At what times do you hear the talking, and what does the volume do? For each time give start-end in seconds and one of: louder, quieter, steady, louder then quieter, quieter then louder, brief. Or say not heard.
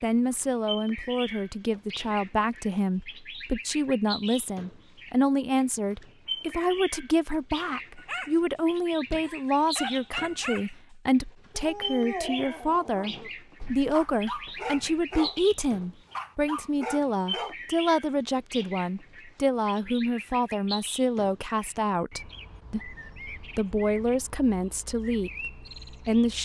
0.0-26.4 steady.